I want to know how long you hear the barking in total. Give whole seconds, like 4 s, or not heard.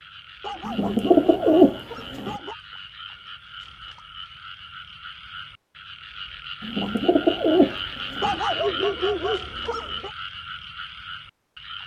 4 s.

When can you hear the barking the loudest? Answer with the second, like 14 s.
9 s.